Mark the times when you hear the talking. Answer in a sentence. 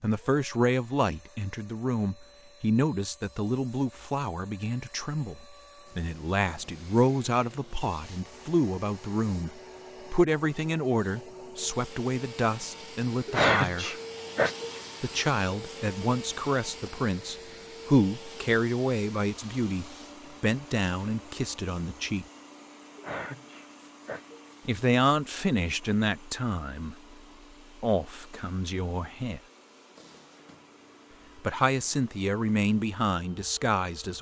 You can hear the talking from 0.0 to 13.9 s, from 15.0 to 22.2 s, from 24.6 to 26.9 s, from 27.8 to 29.4 s and from 31.4 to 34.1 s.